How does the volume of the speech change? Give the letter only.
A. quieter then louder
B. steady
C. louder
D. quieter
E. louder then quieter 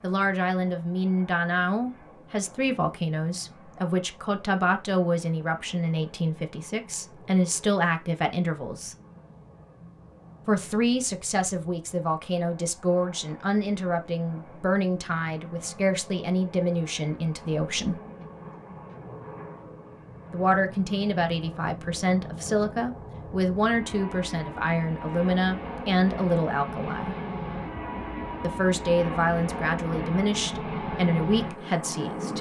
B.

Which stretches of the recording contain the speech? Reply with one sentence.
You can hear the speech from 0.0 to 8.9 s, from 10.4 to 18.0 s, from 20.3 to 27.1 s and from 28.4 to 32.3 s.